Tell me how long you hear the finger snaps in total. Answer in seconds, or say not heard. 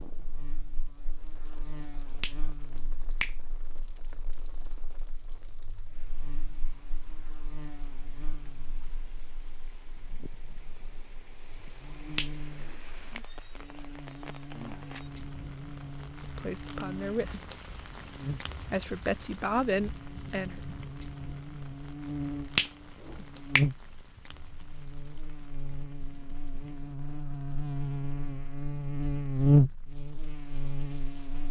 3 s.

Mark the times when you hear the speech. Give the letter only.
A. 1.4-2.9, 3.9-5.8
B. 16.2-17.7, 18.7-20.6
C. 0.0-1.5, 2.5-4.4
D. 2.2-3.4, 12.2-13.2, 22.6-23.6
B.